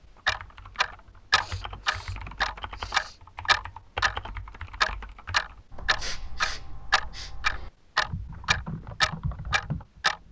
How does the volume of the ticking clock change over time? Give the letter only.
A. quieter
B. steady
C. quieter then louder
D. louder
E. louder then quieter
B.